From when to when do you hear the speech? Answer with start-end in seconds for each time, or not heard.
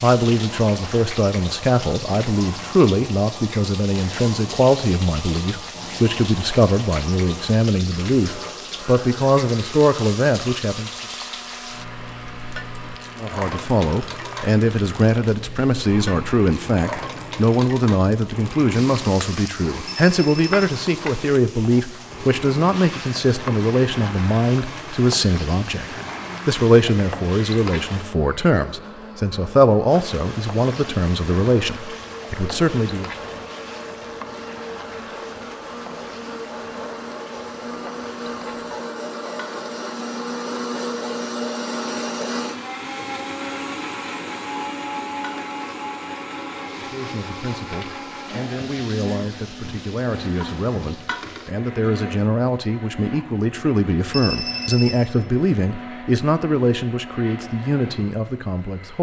0.0-10.9, 13.2-33.1, 46.8-58.9.